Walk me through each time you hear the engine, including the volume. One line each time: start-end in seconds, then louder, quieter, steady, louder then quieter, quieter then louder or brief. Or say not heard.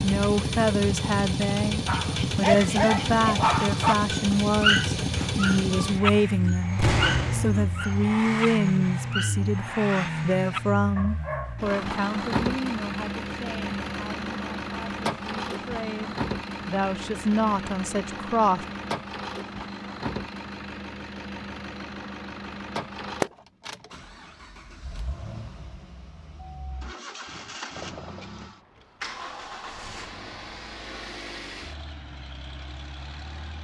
0.0-33.5 quieter.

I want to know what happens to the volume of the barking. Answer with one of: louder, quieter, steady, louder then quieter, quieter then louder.
quieter.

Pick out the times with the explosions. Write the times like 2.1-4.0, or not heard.
6.8-7.7.